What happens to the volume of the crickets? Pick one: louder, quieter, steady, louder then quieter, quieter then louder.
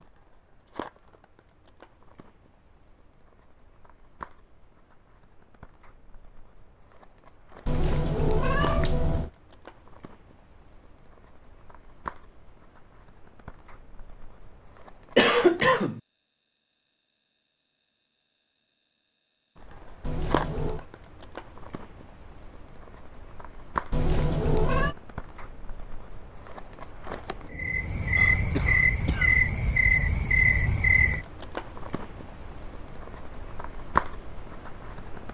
louder.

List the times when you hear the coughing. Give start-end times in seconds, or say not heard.
15.2-16.0, 28.1-29.4.